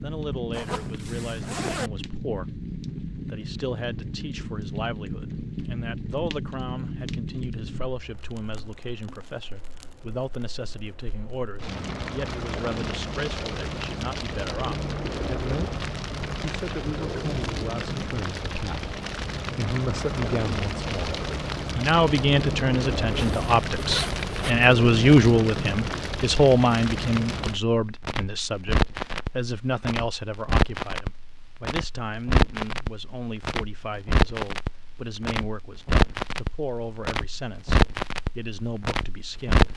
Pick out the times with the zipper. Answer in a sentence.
You can hear the zipper from 0.5 to 1.9 s and from 23.1 to 24.7 s.